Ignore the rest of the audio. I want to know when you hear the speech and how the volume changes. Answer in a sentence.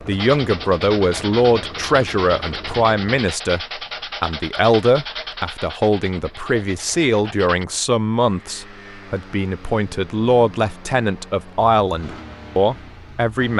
The speech can be heard from 0.1 to 13.5 s, at a steady volume.